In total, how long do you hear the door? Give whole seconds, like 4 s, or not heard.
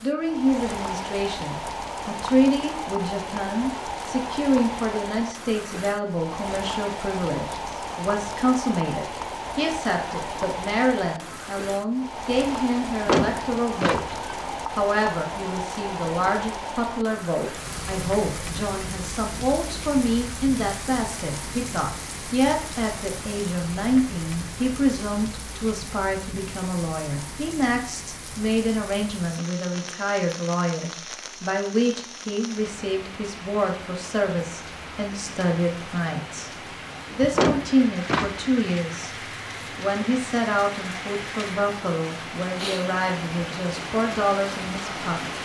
3 s.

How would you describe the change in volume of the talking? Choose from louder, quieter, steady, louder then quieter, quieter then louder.
steady.